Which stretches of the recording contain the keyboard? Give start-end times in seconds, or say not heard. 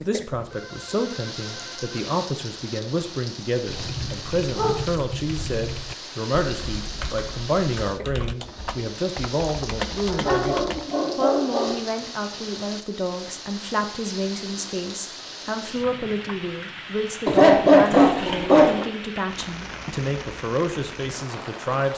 3.6-10.9.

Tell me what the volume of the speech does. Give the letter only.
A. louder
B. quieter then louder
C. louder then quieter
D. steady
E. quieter
D.